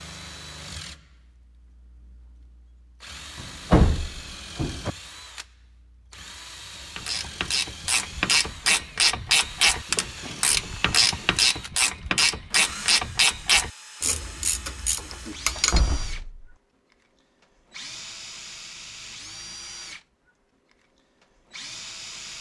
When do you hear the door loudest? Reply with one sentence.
The volume of the door peaks at 4 seconds.